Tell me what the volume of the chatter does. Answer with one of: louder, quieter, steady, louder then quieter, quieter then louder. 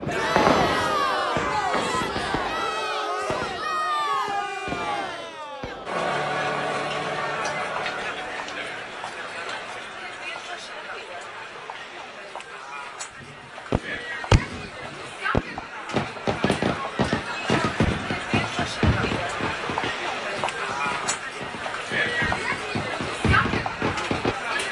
quieter then louder.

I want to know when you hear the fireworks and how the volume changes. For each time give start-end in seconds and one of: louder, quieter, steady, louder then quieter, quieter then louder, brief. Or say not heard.
0.0-6.0 quieter then louder
13.2-24.6 quieter then louder.